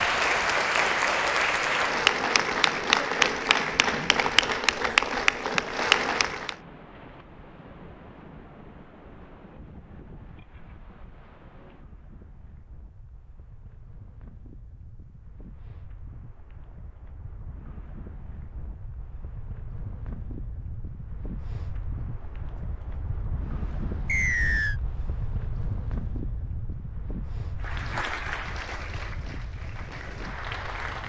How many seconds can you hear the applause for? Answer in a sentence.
The applause can be heard for 10 seconds in total.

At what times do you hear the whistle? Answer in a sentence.
The whistle can be heard from 24.1 to 24.8 s.